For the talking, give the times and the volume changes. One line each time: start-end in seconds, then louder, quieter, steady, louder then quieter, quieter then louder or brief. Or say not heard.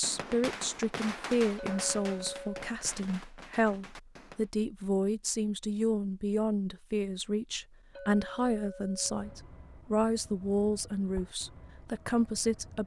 0.0-12.8 steady.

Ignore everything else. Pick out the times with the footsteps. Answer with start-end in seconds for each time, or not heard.
not heard.